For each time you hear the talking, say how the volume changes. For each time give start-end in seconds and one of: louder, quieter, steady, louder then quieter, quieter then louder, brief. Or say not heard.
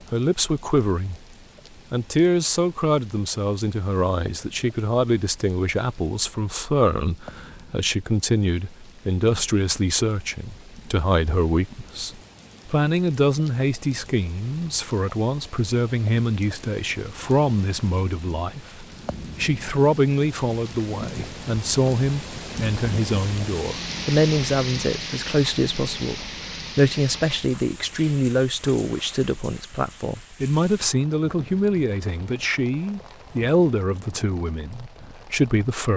0.1-1.1 brief
1.9-35.9 steady.